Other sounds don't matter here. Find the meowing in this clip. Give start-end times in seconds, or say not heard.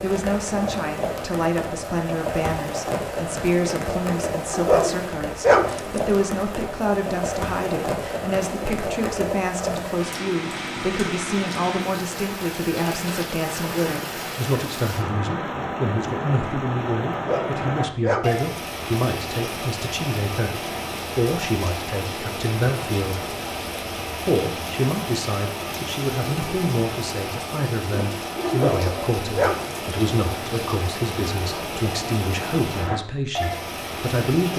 not heard.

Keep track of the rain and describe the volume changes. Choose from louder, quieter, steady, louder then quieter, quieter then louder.
steady.